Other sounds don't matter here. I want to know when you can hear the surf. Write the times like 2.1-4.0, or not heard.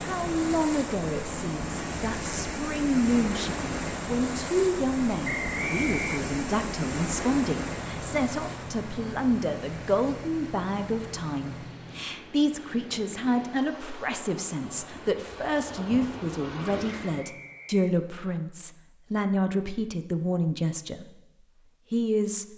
0.0-17.3.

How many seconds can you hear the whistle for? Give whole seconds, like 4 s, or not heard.
2 s.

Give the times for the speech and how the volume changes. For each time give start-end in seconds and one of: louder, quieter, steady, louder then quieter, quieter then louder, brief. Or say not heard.
0.1-21.1 steady
21.9-22.5 brief.